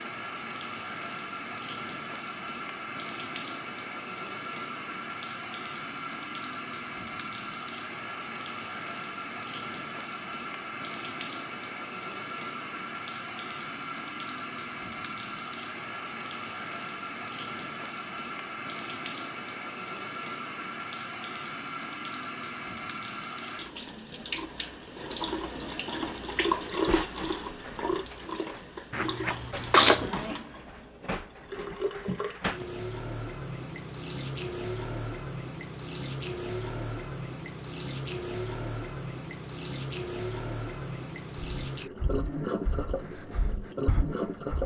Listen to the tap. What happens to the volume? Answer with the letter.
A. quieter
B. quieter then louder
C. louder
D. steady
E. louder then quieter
D.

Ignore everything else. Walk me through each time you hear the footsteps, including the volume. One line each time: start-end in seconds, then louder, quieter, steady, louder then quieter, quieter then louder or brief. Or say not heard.
not heard.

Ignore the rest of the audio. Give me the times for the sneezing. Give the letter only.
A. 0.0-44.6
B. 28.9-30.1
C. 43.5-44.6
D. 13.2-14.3
B.